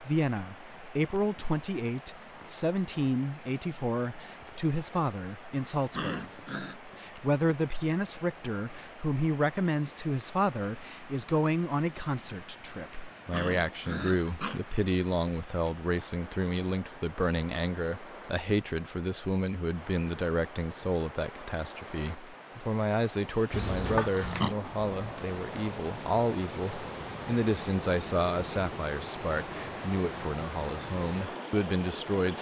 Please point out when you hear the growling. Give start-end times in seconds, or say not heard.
5.9-6.8, 13.3-14.6, 23.5-24.6.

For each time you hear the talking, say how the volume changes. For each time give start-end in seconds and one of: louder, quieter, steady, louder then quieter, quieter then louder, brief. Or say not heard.
0.0-32.3 steady.